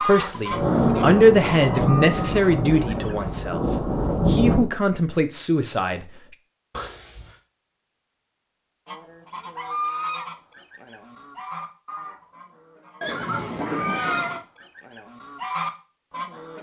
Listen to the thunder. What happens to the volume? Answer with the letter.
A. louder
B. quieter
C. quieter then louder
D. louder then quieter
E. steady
C.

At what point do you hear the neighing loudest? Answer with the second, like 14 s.
14 s.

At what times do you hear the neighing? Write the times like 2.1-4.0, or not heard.
0.1-1.1, 6.7-7.4, 13.0-14.4.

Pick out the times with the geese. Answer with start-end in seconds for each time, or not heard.
0.0-3.3, 8.8-16.5.